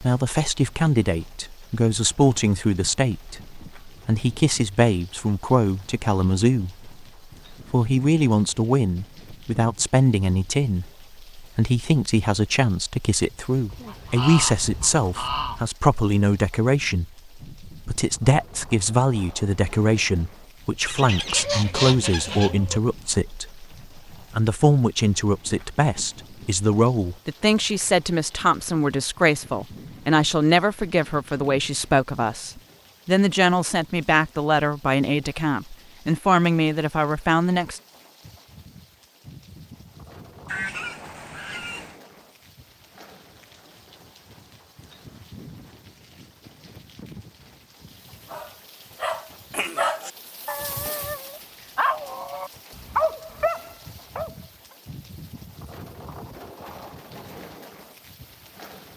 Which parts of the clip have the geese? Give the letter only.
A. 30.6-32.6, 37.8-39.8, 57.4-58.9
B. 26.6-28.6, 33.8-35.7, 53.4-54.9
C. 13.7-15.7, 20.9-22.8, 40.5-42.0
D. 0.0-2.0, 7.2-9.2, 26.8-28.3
C.